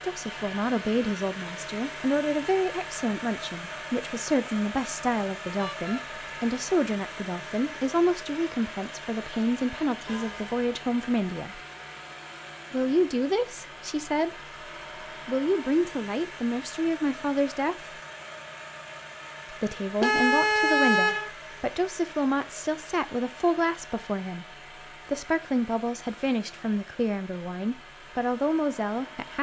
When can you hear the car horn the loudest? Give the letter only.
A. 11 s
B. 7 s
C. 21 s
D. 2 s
C.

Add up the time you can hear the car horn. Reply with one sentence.
You can hear the car horn for 2 seconds altogether.